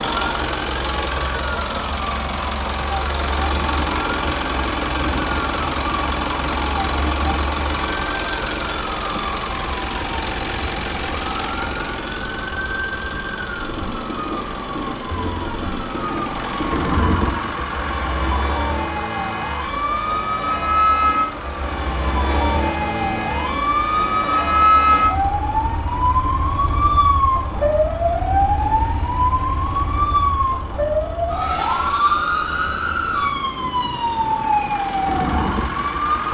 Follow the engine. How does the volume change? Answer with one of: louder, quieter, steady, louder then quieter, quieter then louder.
quieter.